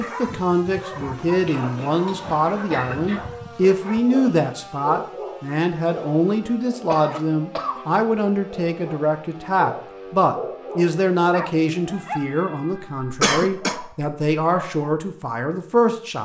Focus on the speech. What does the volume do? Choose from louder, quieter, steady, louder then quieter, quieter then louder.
steady.